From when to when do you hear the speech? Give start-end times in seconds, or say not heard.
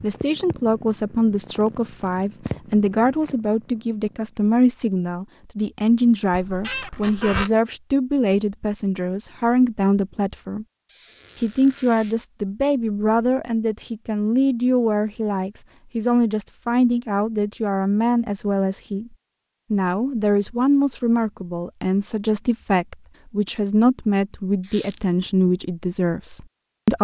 0.0-10.7, 11.4-19.1, 19.7-27.0.